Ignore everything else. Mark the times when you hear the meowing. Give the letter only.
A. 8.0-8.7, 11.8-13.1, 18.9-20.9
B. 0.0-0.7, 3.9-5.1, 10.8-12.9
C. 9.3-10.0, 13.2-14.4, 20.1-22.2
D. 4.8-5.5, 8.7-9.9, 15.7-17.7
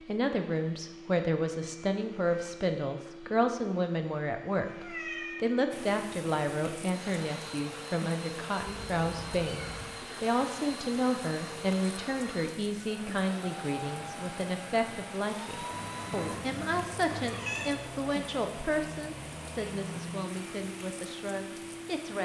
D.